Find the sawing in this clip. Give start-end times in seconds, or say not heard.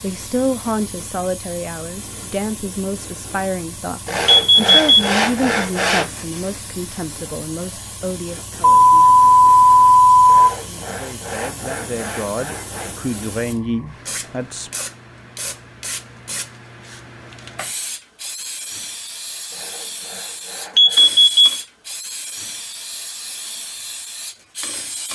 4.0-6.1, 10.2-12.9, 19.5-21.3.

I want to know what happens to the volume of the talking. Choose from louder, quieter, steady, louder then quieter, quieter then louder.
quieter then louder.